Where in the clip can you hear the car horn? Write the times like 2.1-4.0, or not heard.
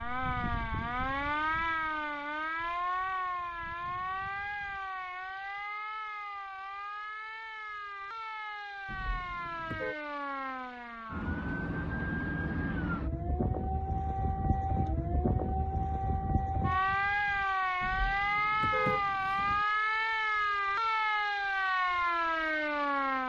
8.8-9.9, 17.8-19.6.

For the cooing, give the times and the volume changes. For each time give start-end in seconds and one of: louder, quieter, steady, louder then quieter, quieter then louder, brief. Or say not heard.
not heard.